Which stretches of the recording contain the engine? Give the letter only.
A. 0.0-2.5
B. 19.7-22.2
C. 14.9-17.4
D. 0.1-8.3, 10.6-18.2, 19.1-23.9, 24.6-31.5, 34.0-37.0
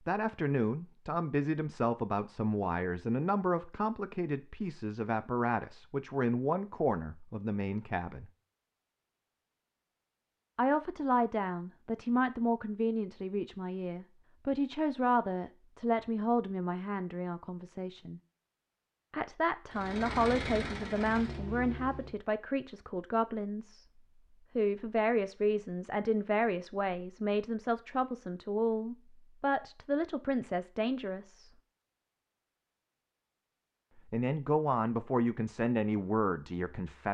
B.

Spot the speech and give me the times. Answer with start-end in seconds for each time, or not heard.
0.1-8.3, 10.6-18.2, 19.1-23.9, 24.6-31.5, 34.0-37.0.